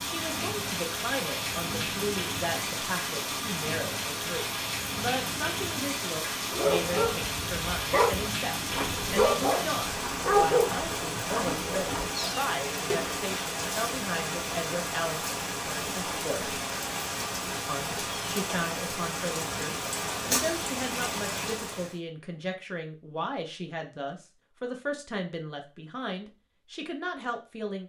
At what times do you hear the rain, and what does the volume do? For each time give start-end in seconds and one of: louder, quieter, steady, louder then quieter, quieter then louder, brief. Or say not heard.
0.0-22.0 steady.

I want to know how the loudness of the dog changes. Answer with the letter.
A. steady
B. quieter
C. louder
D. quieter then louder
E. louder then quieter
E.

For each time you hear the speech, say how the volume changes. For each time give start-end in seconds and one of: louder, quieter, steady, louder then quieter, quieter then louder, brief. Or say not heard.
0.0-16.6 steady
17.6-27.8 steady.